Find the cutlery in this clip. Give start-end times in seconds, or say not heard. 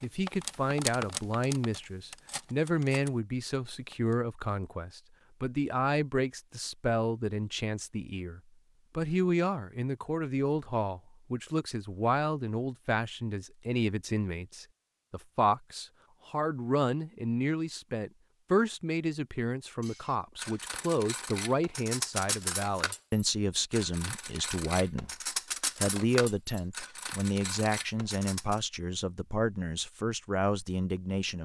0.0-4.2, 19.8-28.6.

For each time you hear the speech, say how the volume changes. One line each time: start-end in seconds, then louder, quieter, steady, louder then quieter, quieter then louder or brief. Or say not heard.
0.0-25.1 steady
25.8-31.4 steady.